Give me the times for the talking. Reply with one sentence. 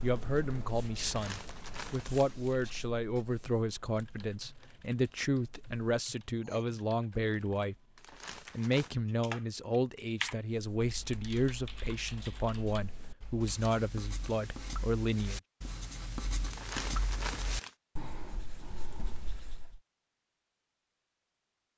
The talking can be heard from 0.0 to 7.8 s and from 8.6 to 15.4 s.